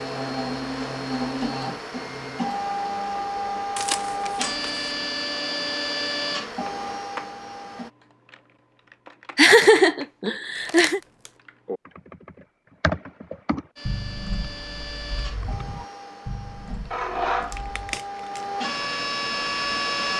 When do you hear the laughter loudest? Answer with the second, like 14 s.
10 s.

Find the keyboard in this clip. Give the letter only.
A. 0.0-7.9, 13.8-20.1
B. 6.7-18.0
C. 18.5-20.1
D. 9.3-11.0
B.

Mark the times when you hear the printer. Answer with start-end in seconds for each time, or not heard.
0.0-7.9, 13.8-20.1.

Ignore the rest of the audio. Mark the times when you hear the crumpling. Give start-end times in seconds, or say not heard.
3.8-4.7, 10.6-11.3, 17.4-18.4.